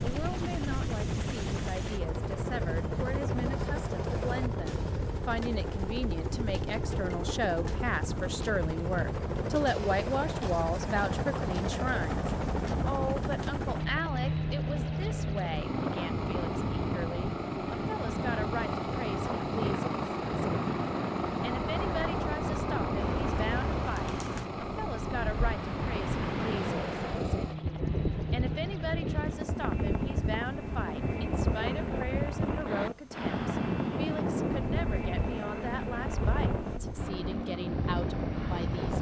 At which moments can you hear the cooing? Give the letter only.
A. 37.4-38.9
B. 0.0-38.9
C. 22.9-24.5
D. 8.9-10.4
C.